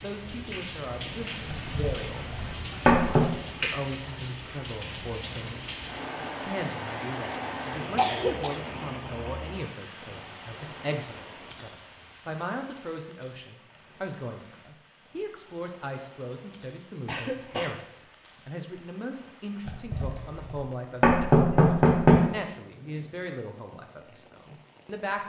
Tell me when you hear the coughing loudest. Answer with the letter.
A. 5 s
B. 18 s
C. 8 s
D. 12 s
C.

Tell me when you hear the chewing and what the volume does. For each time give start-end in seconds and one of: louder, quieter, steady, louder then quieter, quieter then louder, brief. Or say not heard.
not heard.